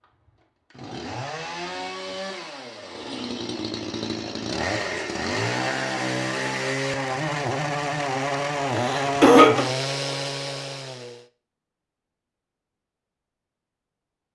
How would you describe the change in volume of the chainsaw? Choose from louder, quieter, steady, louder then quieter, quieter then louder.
louder.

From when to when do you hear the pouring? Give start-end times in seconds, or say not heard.
not heard.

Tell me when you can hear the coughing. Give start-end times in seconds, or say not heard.
8.7-9.7.